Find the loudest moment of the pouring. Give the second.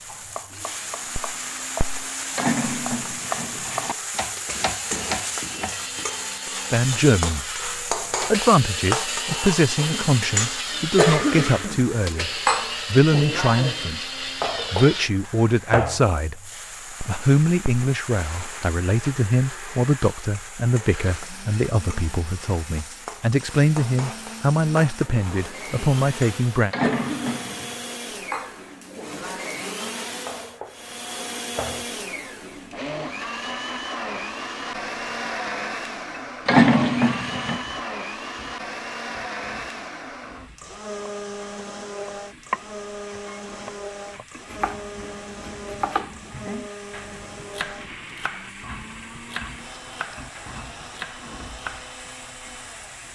37 s.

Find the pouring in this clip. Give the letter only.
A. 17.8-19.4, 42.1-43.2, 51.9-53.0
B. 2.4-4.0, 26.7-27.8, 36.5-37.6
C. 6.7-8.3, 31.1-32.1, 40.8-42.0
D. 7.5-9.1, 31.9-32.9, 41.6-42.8
B.